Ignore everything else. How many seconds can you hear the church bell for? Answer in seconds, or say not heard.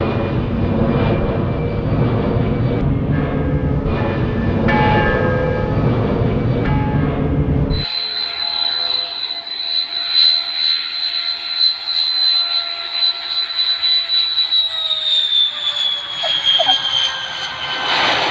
6 s.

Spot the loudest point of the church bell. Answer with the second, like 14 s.
5 s.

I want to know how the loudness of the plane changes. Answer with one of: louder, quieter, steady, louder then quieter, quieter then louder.
steady.